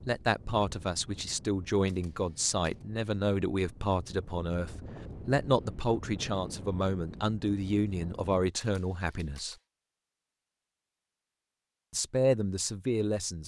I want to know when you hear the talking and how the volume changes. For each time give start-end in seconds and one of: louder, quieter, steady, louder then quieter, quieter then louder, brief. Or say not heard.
0.1-9.6 steady
11.9-13.4 brief.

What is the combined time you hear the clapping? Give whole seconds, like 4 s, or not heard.
not heard.